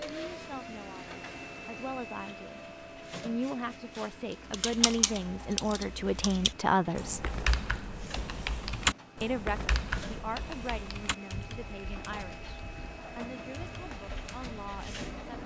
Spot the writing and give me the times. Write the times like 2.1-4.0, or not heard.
not heard.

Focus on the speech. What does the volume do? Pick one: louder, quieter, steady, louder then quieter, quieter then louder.
louder then quieter.